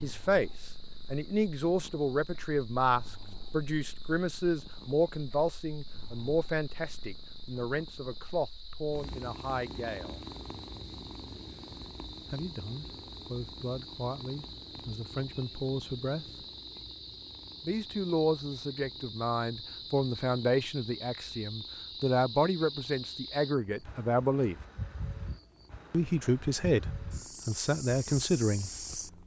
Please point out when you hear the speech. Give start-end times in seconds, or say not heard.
0.0-10.2, 12.2-16.4, 17.6-24.6, 25.9-28.9.